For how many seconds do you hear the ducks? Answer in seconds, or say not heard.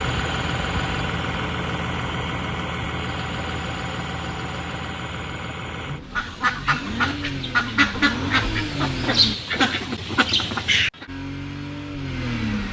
5 s.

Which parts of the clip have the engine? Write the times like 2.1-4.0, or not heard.
0.0-9.3, 11.1-12.6.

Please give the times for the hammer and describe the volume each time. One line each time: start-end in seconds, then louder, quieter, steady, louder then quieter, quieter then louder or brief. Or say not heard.
not heard.